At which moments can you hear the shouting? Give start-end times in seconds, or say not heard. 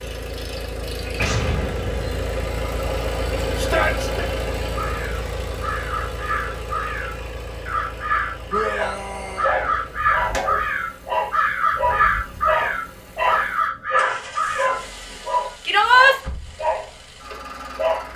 3.5-4.2, 8.4-9.5, 15.7-16.1.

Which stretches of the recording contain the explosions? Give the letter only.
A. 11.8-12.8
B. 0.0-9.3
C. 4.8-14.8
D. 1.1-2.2
D.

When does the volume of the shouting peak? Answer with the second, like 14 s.
16 s.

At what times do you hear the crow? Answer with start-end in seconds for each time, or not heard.
4.8-14.8.